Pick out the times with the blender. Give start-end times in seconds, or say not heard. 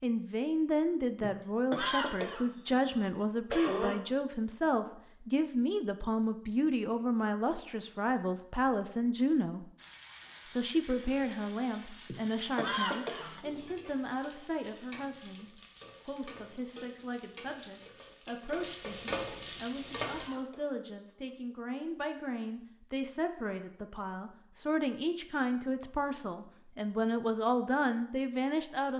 not heard.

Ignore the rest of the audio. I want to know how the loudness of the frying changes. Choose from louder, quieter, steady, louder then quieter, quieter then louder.
louder.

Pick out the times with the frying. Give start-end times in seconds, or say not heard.
9.8-20.3.